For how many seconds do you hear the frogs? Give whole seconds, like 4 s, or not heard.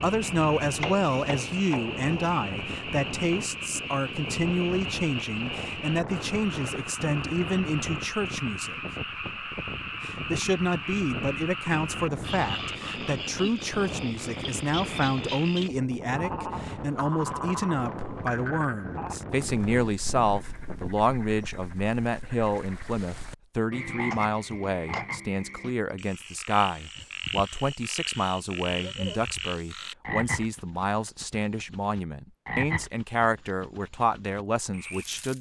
35 s.